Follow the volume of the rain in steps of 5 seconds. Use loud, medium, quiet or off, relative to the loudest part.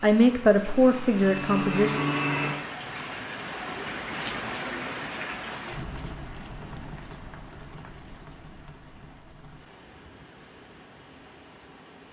loud, medium, quiet.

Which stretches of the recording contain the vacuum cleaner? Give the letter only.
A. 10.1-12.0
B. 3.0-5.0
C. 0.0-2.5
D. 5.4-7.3
C.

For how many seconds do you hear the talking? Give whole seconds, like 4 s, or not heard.
2 s.